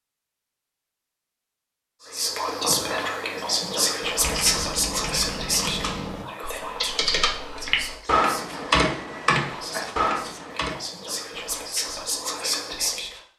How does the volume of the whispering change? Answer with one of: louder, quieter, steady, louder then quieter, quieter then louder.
quieter then louder.